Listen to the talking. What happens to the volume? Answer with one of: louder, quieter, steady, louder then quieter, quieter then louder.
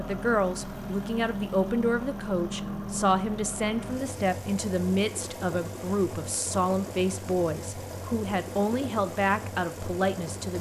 steady.